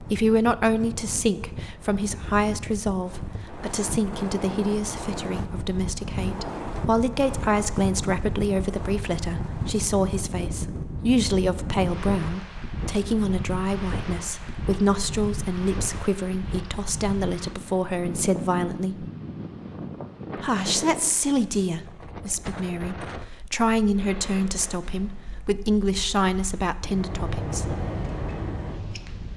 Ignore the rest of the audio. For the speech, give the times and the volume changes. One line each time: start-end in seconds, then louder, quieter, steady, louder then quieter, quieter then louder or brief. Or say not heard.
0.0-19.1 steady
20.4-27.8 quieter then louder.